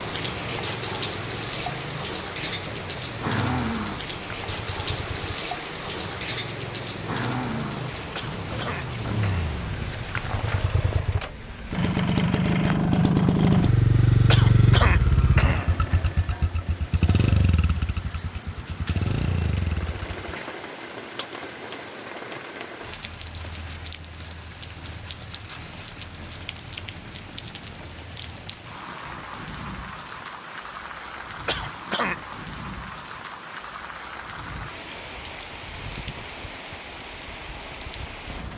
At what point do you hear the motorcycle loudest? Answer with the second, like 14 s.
14 s.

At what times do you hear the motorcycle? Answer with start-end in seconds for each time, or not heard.
0.2-20.4.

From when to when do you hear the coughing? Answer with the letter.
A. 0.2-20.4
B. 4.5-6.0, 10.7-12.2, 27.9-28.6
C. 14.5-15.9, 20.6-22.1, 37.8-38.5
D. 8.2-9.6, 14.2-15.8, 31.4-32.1
D.